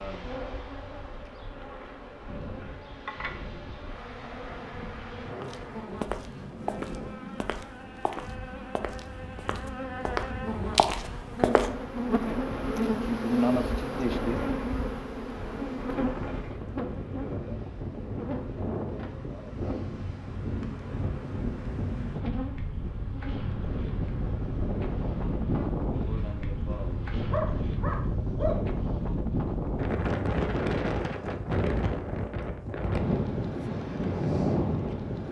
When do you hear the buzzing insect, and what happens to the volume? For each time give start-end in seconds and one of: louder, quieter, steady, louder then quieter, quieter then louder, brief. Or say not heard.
0.0-27.3 louder then quieter.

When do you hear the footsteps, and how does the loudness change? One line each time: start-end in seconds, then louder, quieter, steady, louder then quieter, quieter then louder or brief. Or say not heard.
5.4-11.7 quieter then louder.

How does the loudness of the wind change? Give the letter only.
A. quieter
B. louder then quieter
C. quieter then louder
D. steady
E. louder
E.